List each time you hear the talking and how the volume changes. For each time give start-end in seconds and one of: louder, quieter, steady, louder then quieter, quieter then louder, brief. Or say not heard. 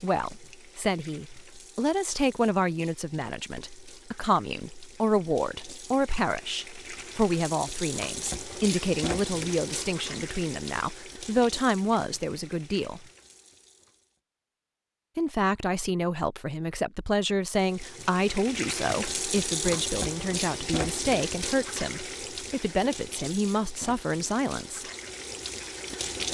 0.0-13.1 steady
15.2-24.9 steady.